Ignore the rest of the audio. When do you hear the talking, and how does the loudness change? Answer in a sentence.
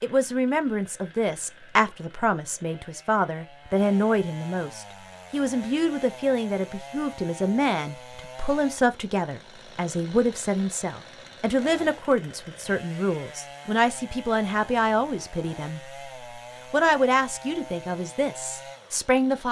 The talking can be heard from 0.0 to 15.8 s, at a steady volume; and briefly from 16.7 to 19.4 s.